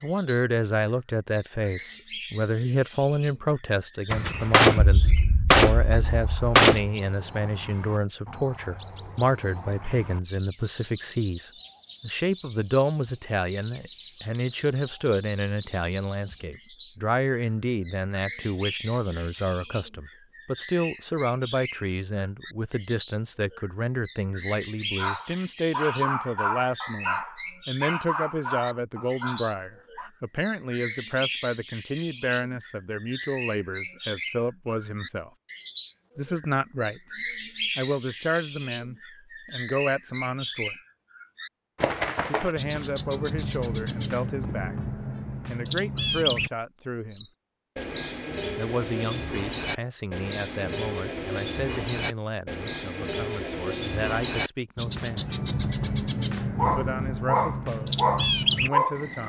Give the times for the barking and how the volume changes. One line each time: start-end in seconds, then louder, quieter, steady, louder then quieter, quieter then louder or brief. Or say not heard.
24.9-30.1 quieter
56.5-59.0 brief.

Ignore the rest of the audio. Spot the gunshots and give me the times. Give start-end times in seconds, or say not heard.
4.1-6.9.